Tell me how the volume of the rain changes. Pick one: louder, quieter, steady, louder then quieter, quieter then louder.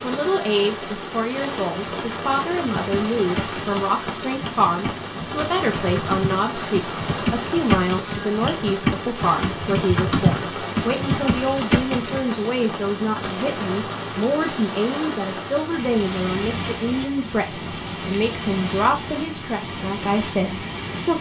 steady.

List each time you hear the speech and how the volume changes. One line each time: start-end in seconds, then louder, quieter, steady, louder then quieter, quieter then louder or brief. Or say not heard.
0.0-21.1 steady.